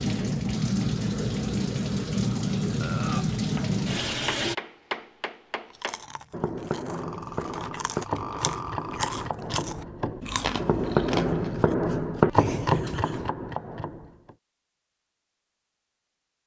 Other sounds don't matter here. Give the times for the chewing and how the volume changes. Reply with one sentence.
You can hear the chewing from 5.7 to 11.8 s, getting louder.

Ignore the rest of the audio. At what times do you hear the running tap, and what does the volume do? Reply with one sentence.
You can hear the running tap from 0.0 to 4.5 s, at a steady volume.